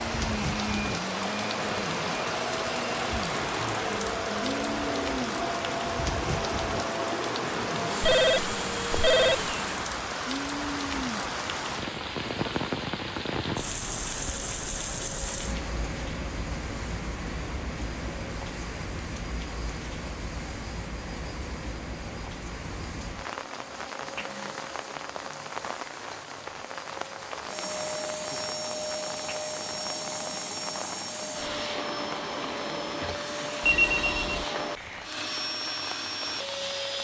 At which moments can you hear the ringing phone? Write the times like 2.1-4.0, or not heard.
8.0-9.6, 33.6-34.5.